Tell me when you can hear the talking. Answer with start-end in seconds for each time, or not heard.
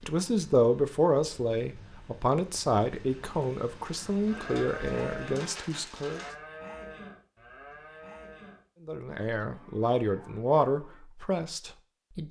0.0-6.2, 8.8-12.2.